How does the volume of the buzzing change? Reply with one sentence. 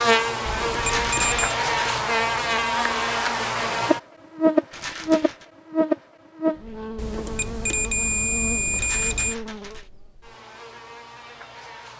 The loudness of the buzzing goes down.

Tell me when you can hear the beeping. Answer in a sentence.
You can hear the beeping from 0.5 to 1.6 s and from 7.0 to 9.3 s.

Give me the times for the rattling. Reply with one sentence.
The rattling can be heard from 0.8 to 1.9 s, from 4.7 to 5.5 s and from 8.8 to 9.9 s.